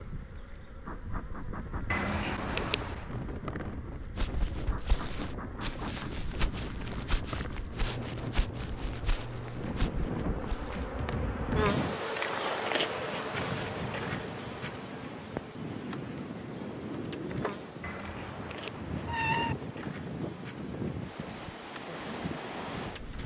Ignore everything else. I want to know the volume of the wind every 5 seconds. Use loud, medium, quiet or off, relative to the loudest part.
medium, loud, loud, loud, loud.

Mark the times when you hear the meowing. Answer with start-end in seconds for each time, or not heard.
1.9-3.0, 17.8-19.6.